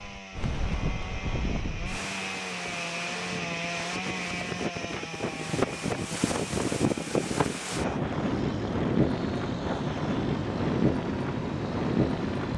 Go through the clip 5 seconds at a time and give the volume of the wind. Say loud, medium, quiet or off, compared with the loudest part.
medium, loud, loud.